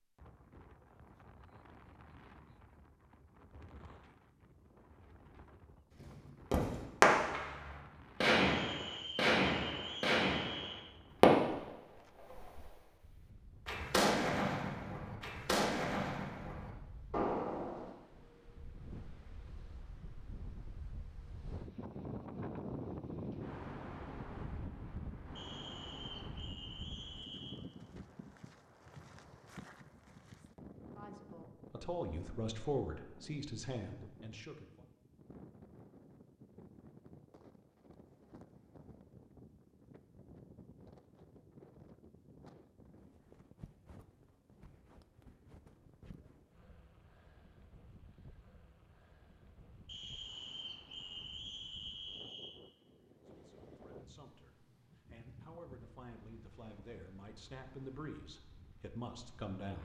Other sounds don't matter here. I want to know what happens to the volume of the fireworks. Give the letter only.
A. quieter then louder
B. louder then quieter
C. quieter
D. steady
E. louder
C.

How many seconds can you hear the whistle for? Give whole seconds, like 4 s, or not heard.
7 s.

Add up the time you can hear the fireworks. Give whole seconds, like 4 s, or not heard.
11 s.